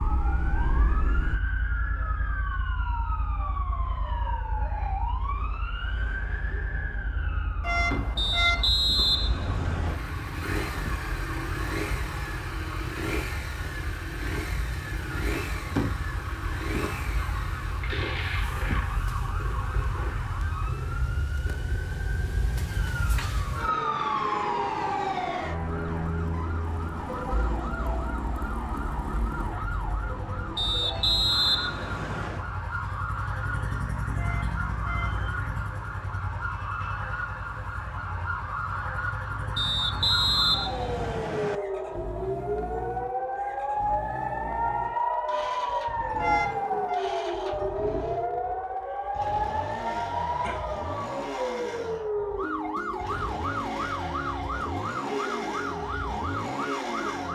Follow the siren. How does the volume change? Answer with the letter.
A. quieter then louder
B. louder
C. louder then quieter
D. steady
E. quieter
B.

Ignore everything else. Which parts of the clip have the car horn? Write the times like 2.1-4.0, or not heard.
7.6-8.7, 34.1-35.2, 46.1-47.0.